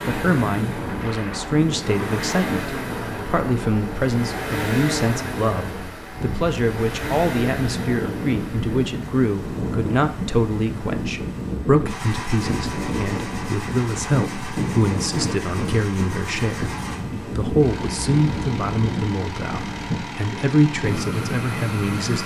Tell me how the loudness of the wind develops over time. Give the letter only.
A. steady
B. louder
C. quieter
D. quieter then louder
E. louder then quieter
A.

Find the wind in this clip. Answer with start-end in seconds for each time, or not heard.
0.0-22.2.